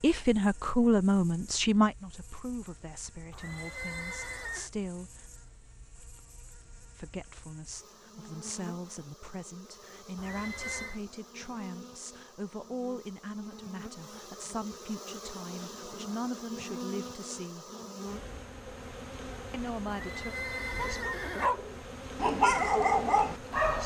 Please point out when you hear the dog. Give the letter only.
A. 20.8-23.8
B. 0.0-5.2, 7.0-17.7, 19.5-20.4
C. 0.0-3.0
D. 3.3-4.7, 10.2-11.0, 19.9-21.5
A.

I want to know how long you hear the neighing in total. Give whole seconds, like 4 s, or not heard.
4 s.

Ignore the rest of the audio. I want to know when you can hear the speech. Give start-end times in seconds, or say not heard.
0.0-5.2, 7.0-17.7, 19.5-20.4.